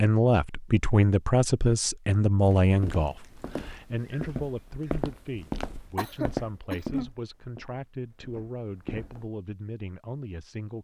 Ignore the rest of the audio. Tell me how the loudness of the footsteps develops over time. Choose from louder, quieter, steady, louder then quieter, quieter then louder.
louder then quieter.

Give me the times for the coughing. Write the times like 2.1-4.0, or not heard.
6.0-7.1.